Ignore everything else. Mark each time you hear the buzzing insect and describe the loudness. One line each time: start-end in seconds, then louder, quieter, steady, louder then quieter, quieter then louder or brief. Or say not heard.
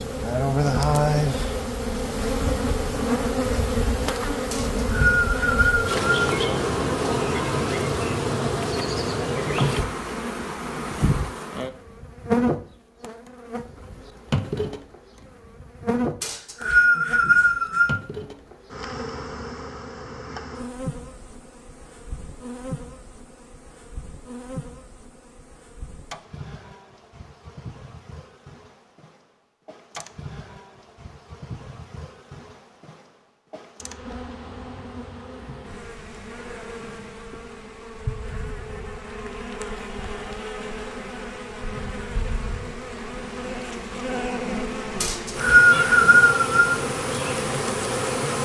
0.0-48.4 quieter then louder.